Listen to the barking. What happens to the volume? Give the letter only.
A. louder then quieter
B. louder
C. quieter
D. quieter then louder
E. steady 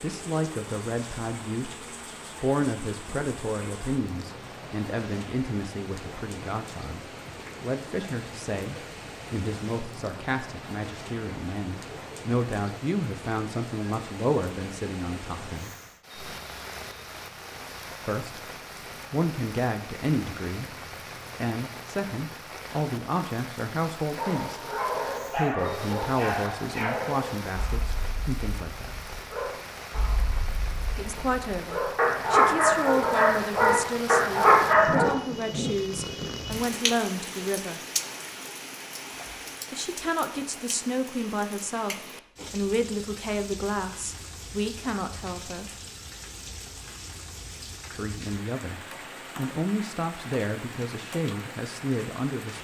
D.